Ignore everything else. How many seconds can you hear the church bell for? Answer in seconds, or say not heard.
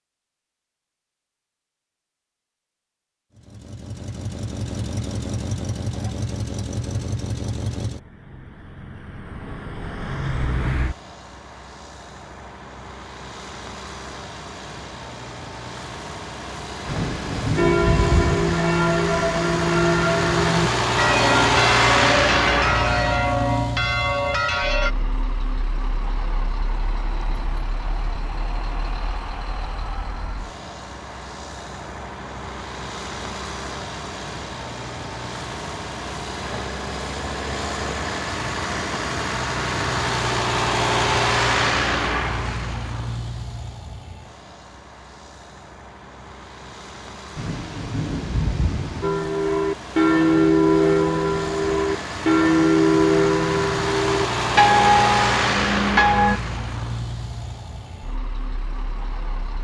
15 s.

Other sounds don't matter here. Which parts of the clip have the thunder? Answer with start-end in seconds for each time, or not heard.
16.9-18.6, 47.4-49.1.